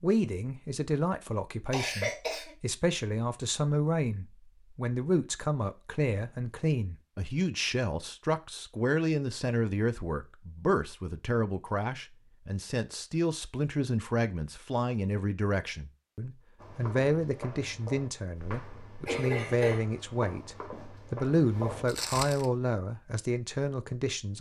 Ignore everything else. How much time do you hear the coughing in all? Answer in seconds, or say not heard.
2 s.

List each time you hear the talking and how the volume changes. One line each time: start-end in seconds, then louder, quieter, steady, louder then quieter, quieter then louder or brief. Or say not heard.
0.0-24.3 steady.